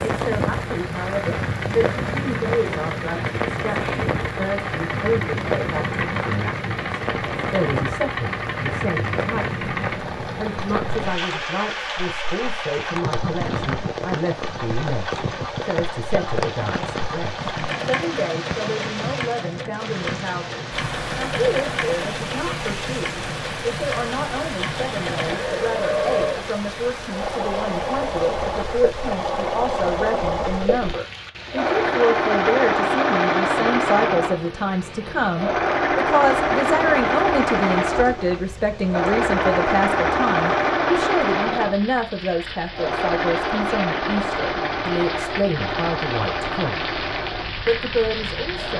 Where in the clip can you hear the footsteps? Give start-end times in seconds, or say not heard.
not heard.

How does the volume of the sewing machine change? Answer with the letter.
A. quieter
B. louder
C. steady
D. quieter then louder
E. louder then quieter
B.